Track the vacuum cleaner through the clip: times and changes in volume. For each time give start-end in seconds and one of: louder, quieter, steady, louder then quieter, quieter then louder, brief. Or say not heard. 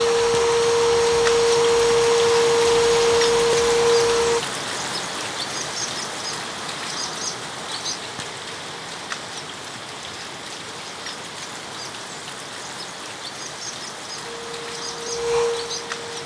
0.0-4.4 steady
14.2-16.2 brief.